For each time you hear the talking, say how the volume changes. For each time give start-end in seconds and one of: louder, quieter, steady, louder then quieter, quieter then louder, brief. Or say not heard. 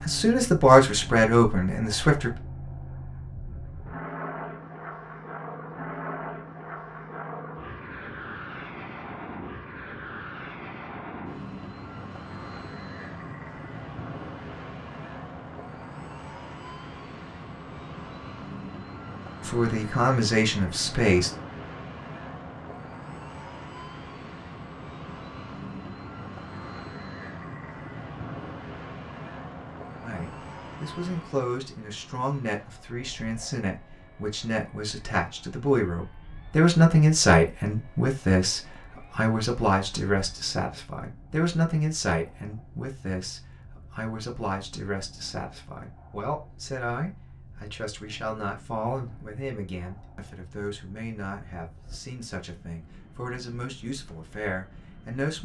0.0-2.4 brief
19.4-21.3 brief
30.0-55.4 louder then quieter.